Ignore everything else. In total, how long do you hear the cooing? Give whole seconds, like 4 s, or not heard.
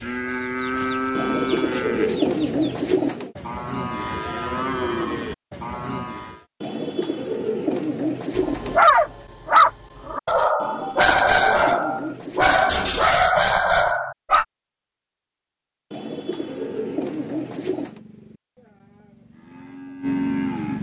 9 s.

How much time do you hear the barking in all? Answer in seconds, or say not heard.
6 s.